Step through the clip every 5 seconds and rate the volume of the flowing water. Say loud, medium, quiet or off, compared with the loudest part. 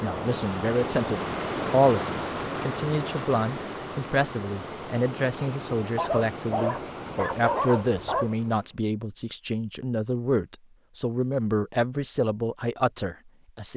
loud, medium, off.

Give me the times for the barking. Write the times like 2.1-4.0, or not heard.
6.0-8.3.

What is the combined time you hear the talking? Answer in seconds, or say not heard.
14 s.